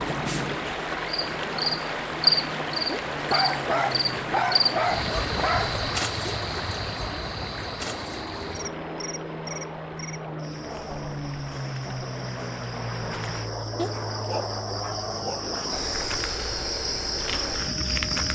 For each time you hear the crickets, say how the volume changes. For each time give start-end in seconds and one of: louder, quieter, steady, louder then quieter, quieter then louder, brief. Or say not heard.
0.0-18.2 quieter then louder.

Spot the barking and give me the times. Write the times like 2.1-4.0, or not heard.
3.2-5.8, 13.8-15.4.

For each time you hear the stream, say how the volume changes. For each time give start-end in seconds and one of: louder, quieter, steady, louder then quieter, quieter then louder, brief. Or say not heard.
0.0-13.5 quieter.